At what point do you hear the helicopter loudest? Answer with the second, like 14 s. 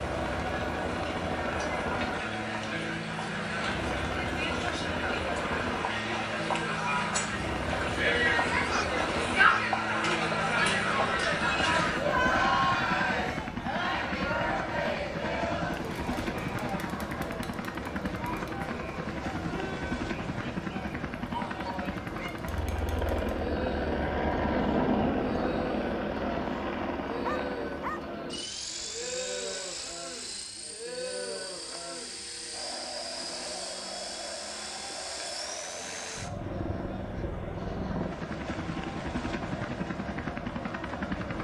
25 s.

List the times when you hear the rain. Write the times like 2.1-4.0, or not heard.
not heard.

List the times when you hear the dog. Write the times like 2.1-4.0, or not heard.
8.7-9.7, 27.2-28.1.